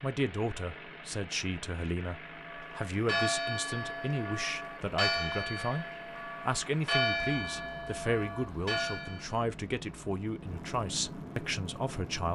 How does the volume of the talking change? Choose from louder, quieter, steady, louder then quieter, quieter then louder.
steady.